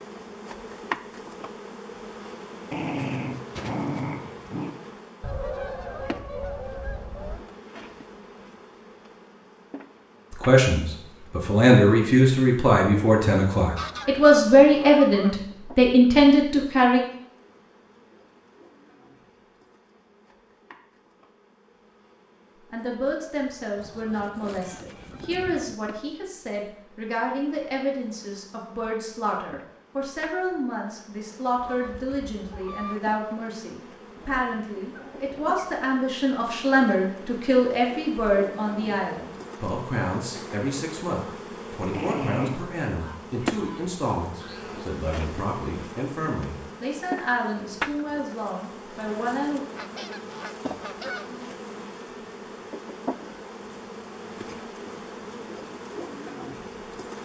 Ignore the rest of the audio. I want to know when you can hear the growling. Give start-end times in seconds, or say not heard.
2.7-4.7, 34.2-35.8, 41.9-42.6.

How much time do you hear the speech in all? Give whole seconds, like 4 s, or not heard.
34 s.